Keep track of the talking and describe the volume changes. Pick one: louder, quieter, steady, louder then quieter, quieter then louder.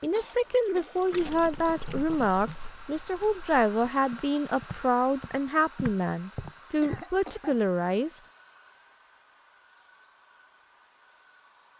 steady.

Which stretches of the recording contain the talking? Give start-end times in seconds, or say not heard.
0.0-8.2.